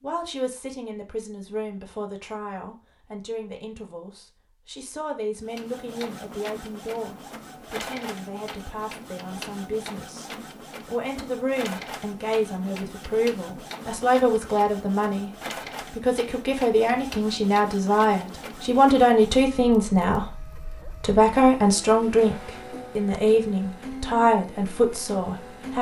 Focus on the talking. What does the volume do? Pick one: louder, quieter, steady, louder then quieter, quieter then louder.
louder.